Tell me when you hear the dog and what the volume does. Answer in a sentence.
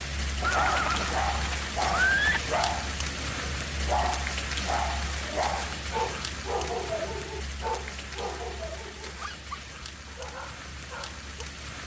The dog can be heard from 0.5 to 11.3 s, getting quieter.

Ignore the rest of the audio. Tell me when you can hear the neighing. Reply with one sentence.
You can hear the neighing from 0.4 to 2.4 s.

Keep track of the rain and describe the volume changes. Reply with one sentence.
The volume of the rain goes down.